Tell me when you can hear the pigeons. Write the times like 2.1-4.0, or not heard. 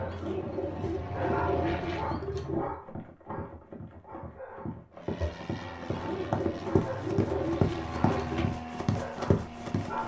0.1-2.8, 5.9-8.6.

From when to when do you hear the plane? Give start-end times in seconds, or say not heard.
0.0-2.1, 4.9-10.0.